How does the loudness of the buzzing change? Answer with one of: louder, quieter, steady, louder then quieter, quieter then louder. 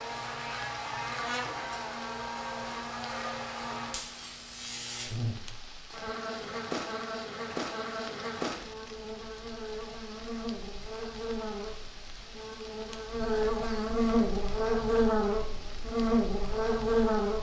louder.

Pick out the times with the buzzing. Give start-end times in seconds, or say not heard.
0.0-17.3.